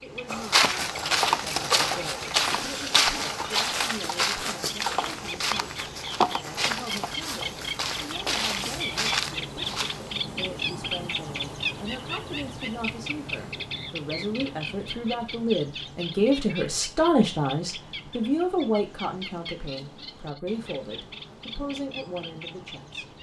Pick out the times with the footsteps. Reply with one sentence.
You can hear the footsteps from 0.3 to 10.2 s.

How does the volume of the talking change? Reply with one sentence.
The loudness of the talking goes up, then down.